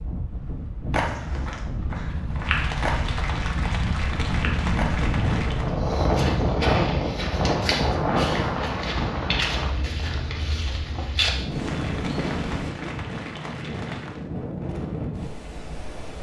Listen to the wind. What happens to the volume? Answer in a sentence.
The loudness of the wind goes up, then down.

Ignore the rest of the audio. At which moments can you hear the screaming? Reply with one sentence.
You can't hear the screaming here.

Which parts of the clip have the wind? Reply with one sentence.
The wind can be heard from 0.0 to 16.1 s.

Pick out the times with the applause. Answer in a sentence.
You can hear the applause from 2.4 to 5.8 s and from 11.7 to 14.2 s.